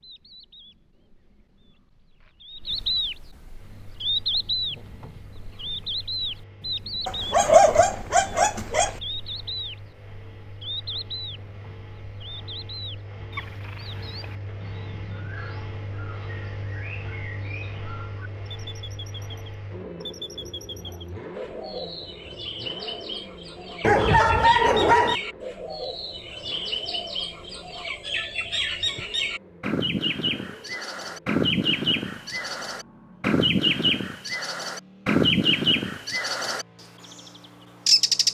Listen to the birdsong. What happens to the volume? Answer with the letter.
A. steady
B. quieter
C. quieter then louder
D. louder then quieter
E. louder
C.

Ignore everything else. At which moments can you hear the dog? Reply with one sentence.
The dog can be heard from 7.0 to 8.9 s and from 23.8 to 25.1 s.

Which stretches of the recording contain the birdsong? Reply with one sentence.
You can hear the birdsong from 0.0 to 38.2 s.